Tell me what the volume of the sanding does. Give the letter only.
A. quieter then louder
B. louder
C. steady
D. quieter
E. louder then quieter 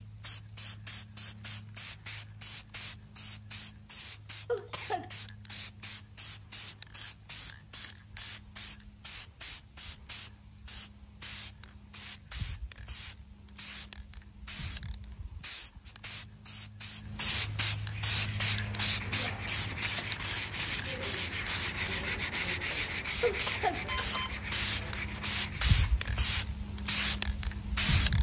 E.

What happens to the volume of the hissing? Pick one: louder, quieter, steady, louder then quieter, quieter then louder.
louder.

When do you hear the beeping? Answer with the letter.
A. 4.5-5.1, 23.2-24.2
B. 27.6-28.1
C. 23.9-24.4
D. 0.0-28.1
C.